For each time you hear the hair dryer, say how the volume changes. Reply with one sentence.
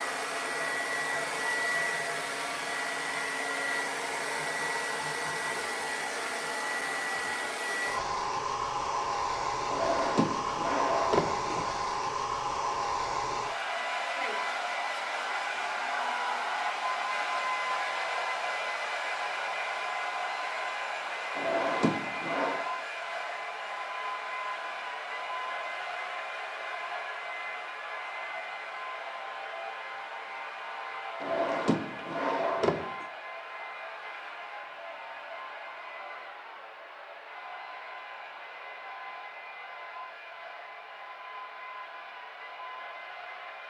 You can hear the hair dryer from 0.0 to 43.6 s, getting quieter.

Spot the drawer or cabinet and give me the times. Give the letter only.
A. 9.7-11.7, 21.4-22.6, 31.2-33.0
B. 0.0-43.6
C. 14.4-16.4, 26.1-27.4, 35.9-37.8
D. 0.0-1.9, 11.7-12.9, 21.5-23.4
A.